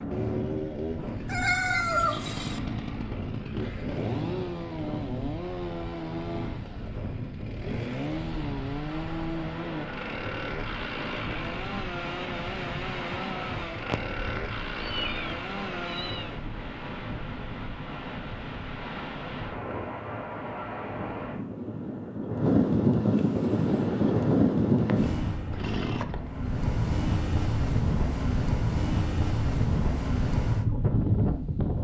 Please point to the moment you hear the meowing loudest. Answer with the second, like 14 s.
2 s.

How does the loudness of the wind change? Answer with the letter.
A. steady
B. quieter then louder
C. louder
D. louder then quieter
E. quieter
C.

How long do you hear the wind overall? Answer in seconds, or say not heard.
32 s.